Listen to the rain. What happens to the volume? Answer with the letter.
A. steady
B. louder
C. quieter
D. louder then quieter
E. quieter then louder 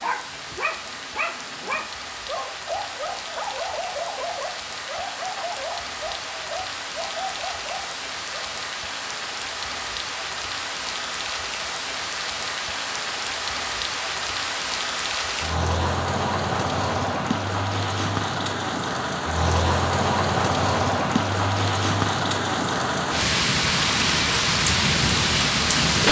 B.